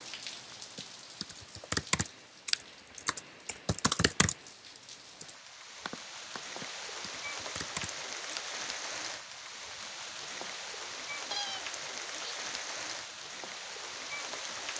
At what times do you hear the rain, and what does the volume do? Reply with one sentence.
The rain can be heard from 0.0 to 14.7 s, getting louder.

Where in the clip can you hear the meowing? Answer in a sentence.
The meowing can be heard from 11.3 to 12.3 s.